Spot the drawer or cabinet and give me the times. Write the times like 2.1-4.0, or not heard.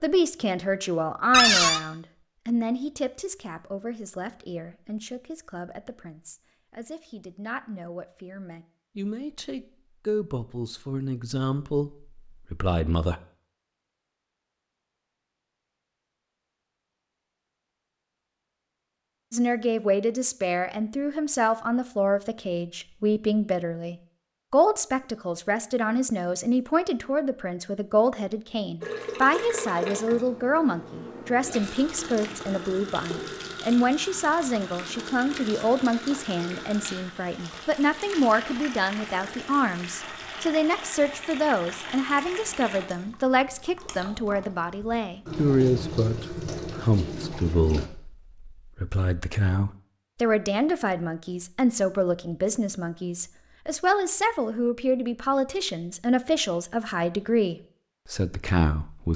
1.3-1.8.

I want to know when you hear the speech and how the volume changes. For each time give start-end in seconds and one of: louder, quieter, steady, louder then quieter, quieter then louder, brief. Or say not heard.
0.0-13.2 quieter then louder
19.3-59.1 steady.